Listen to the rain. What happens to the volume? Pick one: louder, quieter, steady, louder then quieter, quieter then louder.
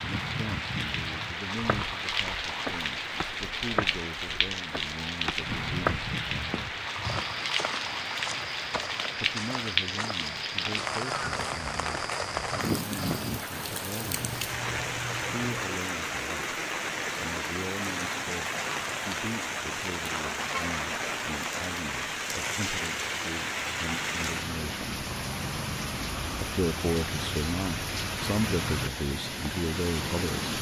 steady.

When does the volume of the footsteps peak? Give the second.
6 s.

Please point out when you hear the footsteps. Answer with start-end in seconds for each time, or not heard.
1.6-13.3.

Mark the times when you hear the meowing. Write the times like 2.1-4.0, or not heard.
14.2-15.8.